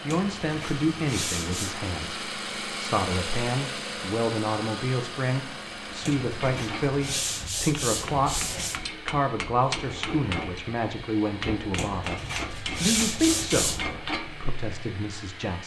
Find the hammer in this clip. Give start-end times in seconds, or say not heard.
5.9-14.6.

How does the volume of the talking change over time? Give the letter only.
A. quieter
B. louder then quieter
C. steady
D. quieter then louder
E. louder
C.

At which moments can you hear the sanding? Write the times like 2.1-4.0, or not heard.
0.1-1.8, 6.0-8.8, 11.8-13.9.